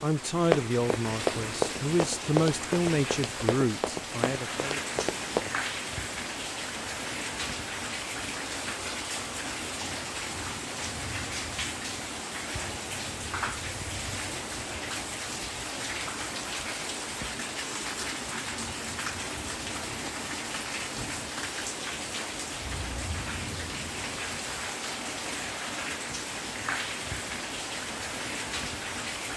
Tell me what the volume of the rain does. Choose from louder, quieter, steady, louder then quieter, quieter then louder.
steady.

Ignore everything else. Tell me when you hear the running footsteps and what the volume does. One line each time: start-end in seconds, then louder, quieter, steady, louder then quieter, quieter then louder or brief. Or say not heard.
0.5-5.7 quieter.